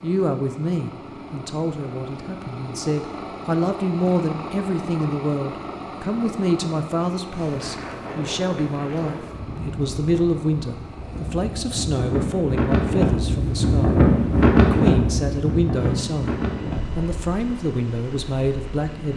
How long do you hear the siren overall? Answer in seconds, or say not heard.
not heard.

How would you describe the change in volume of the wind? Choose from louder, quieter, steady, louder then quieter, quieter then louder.
louder then quieter.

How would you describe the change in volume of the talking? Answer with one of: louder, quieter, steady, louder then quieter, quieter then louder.
steady.